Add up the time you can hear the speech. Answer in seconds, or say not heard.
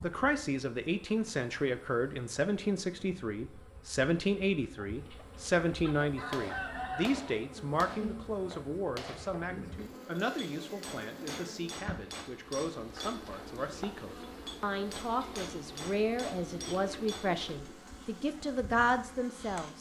20 s.